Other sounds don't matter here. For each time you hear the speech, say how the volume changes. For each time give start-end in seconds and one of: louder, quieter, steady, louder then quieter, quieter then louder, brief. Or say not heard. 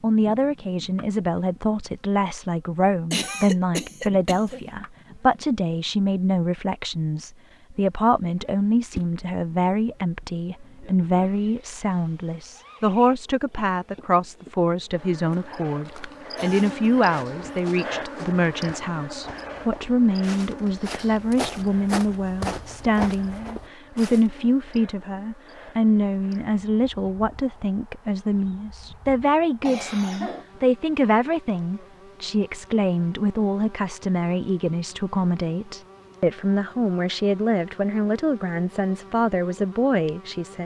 0.0-40.6 steady.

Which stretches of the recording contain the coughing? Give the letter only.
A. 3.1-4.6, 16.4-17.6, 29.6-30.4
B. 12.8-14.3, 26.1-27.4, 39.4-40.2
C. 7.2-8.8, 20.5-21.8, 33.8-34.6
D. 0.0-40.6
A.